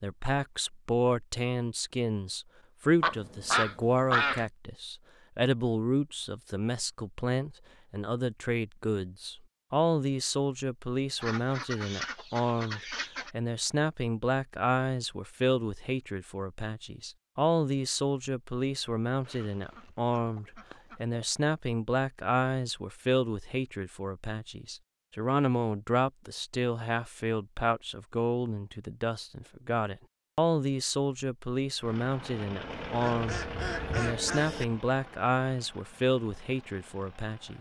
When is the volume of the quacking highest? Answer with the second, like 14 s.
4 s.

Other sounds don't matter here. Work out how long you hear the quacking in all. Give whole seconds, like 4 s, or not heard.
8 s.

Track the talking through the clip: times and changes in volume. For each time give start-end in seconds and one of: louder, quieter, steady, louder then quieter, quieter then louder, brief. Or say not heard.
0.0-37.5 steady.